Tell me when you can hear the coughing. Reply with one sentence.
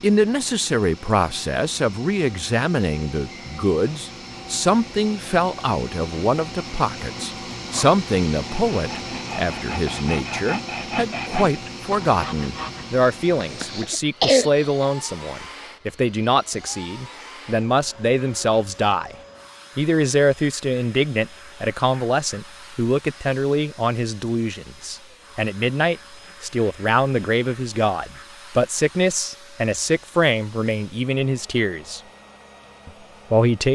The coughing can be heard from 13.4 to 14.8 s.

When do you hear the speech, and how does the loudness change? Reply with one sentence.
The speech can be heard from 0.0 to 19.1 s, at a steady volume; from 19.8 to 32.0 s, at a steady volume; and briefly from 32.9 to 33.7 s.